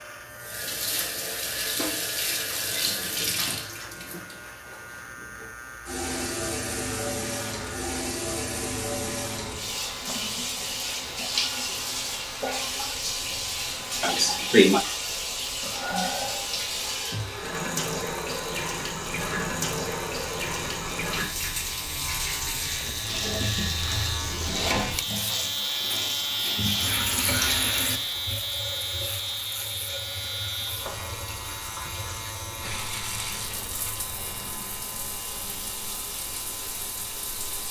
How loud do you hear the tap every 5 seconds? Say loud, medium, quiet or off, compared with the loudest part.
loud, loud, loud, loud, loud, loud, medium, medium.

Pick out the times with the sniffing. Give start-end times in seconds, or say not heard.
14.0-14.8.